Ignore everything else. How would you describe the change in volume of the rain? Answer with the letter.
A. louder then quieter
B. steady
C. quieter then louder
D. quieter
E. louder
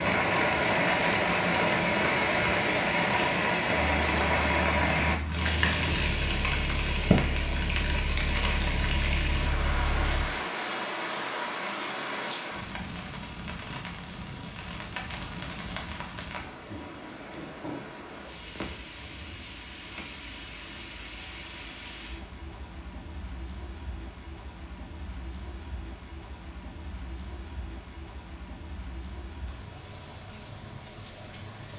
D.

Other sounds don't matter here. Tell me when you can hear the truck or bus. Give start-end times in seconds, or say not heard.
3.8-10.3.